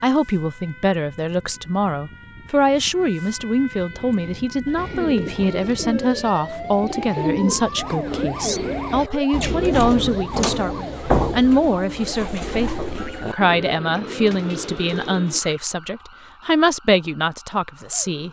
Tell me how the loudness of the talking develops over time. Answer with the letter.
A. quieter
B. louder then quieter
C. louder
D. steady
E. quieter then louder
D.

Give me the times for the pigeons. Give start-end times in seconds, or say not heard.
3.9-15.4.